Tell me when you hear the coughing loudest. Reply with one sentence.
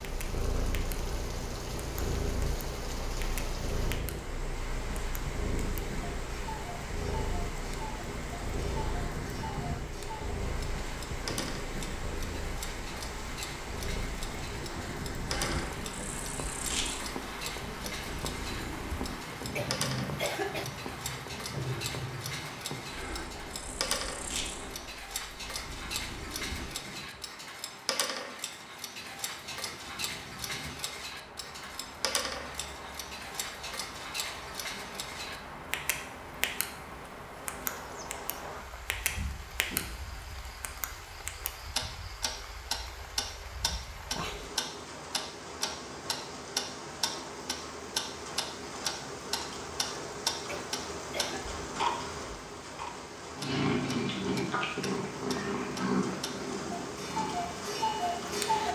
The loudest moment of the coughing is at 20 seconds.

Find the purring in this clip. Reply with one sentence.
The purring can be heard from 0.0 to 26.8 s and from 53.4 to 58.7 s.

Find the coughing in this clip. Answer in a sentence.
You can hear the coughing from 19.6 to 20.6 s and from 50.5 to 51.5 s.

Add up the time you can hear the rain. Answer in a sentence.
The rain can be heard for 59 seconds in total.